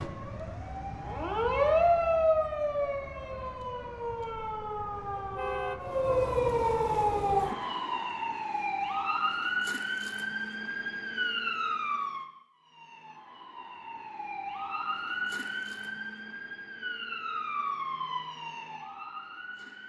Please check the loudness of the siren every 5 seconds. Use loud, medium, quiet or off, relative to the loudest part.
loud, loud, medium, medium.